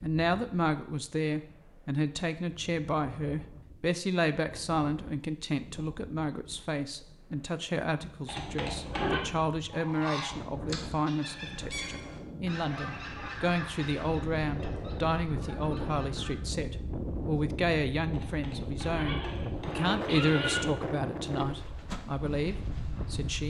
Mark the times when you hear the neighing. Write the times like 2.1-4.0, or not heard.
8.2-9.2, 18.1-20.6.